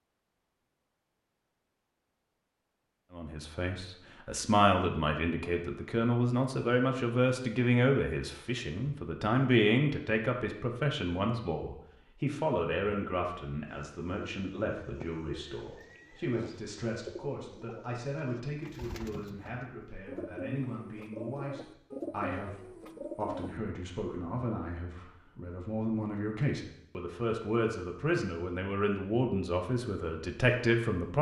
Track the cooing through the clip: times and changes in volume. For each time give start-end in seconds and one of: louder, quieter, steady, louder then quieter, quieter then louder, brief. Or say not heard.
13.7-23.6 louder.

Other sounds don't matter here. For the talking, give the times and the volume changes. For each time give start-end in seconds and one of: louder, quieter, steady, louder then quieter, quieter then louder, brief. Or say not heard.
3.1-22.6 quieter
23.1-31.1 louder.